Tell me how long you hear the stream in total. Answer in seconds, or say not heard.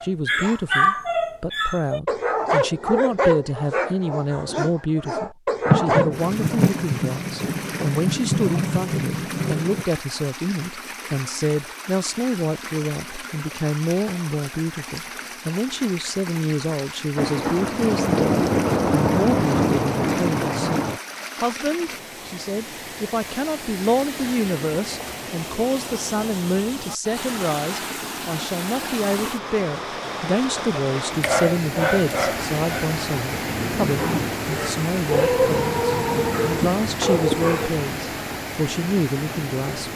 34 s.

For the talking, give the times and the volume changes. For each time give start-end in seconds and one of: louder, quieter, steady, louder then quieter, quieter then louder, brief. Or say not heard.
0.0-39.9 steady.